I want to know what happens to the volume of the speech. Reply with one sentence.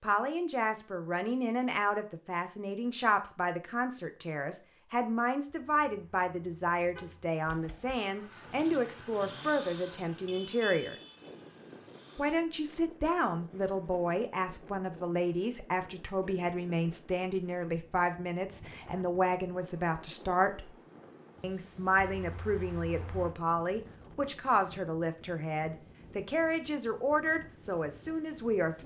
The volume of the speech stays about the same.